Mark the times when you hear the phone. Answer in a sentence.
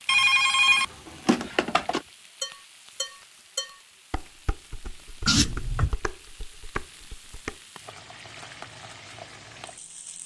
The phone can be heard from 0.1 to 2.0 s and from 5.2 to 6.0 s.